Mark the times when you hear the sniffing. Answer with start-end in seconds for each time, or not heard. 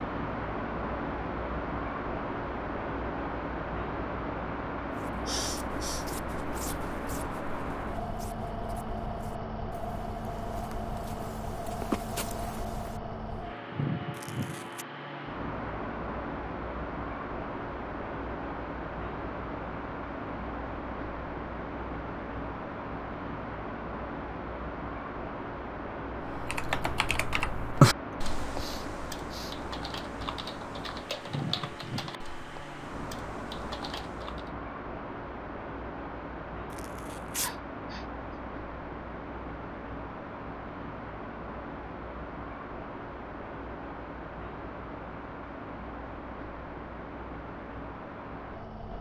5.2-6.0, 28.6-29.6, 37.4-38.0.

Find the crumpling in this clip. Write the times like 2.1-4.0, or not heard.
14.1-14.8, 36.7-37.5.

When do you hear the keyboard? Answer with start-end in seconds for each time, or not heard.
26.2-34.5.